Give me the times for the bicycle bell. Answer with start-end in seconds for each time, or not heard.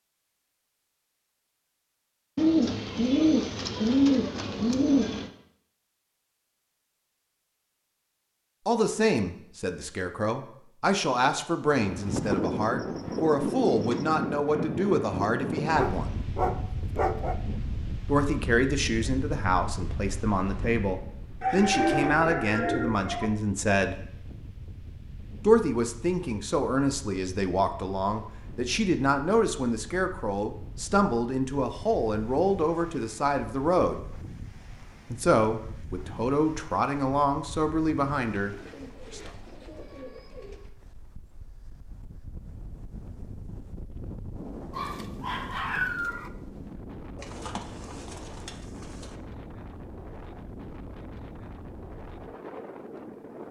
not heard.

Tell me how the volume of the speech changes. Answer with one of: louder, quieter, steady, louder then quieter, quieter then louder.
steady.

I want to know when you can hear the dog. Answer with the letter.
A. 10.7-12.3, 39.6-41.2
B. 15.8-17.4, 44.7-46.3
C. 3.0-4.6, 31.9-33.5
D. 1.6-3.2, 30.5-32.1
B.